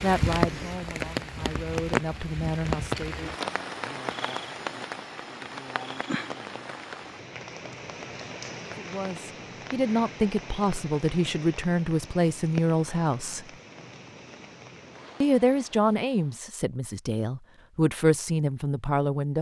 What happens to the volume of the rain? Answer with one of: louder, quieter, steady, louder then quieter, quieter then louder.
quieter.